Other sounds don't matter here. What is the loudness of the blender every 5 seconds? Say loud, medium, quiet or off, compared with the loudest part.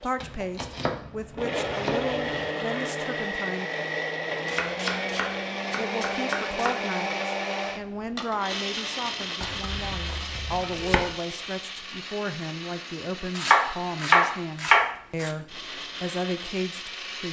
loud, loud, medium, medium.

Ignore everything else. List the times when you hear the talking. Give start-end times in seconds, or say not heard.
0.0-3.7, 5.8-17.2.